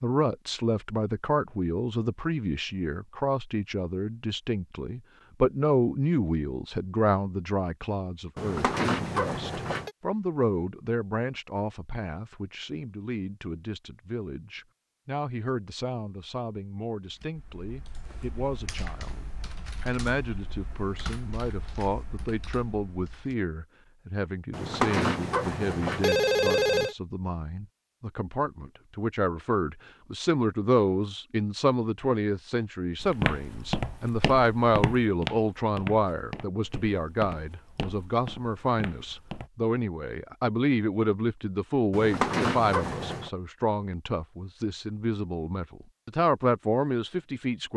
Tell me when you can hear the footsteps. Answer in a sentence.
You can hear the footsteps from 33.0 to 39.5 s.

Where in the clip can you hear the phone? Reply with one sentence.
The phone can be heard from 8.3 to 9.9 s, from 24.5 to 26.9 s and from 41.9 to 43.3 s.